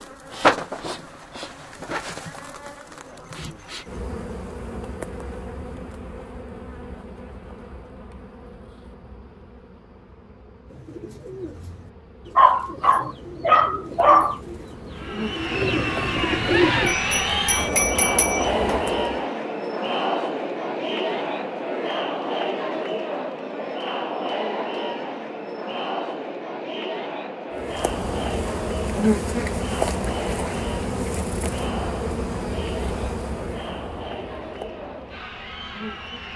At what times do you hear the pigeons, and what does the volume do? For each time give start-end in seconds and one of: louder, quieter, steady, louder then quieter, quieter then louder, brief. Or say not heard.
10.7-16.9 louder.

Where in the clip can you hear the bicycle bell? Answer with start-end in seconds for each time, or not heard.
16.9-18.9.